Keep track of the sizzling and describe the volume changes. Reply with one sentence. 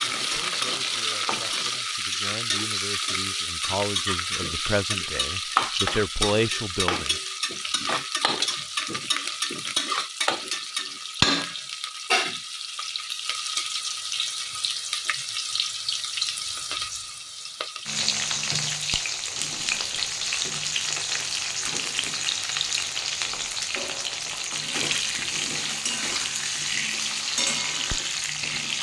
The volume of the sizzling stays about the same.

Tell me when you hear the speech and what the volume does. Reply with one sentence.
The speech can be heard from 0.0 to 7.2 s, getting louder.